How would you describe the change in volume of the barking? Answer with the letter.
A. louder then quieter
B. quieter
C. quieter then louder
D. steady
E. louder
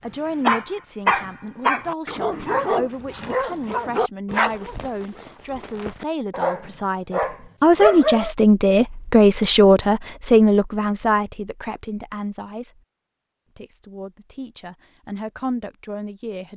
C.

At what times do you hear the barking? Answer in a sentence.
The barking can be heard from 0.4 to 8.3 s.